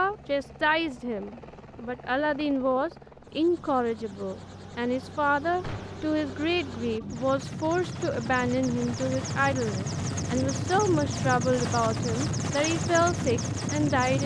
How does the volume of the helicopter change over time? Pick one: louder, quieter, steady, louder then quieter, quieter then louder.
louder.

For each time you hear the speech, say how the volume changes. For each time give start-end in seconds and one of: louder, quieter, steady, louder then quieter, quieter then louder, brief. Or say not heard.
0.0-14.2 steady.